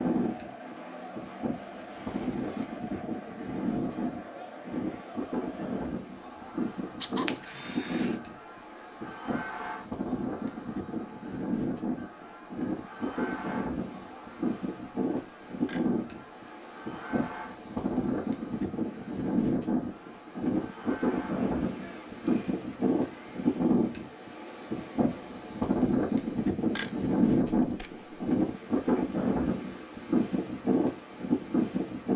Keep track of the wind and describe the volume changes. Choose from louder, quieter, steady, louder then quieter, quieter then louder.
louder.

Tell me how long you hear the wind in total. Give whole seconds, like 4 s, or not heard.
32 s.